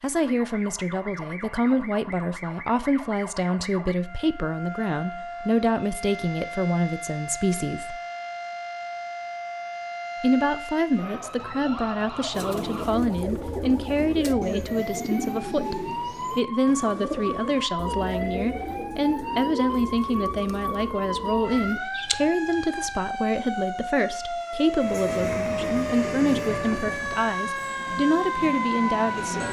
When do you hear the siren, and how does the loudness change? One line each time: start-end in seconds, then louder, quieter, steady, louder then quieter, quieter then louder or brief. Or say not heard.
0.1-29.4 louder.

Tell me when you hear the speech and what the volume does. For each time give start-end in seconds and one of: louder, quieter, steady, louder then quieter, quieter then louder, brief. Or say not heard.
0.0-8.0 steady
10.2-29.4 steady.